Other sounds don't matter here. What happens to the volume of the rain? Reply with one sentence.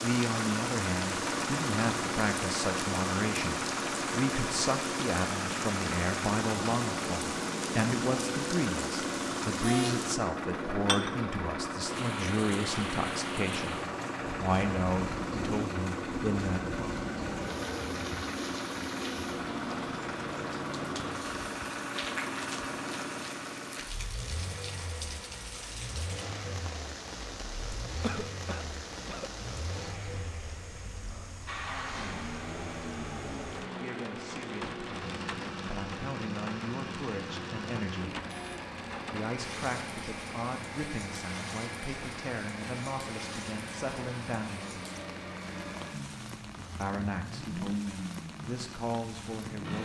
The loudness of the rain goes down.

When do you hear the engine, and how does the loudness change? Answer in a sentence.
The engine can be heard from 0.0 to 49.7 s, getting quieter.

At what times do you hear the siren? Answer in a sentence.
The siren can't be heard in this clip.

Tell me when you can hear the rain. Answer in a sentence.
You can hear the rain from 0.0 to 49.7 s.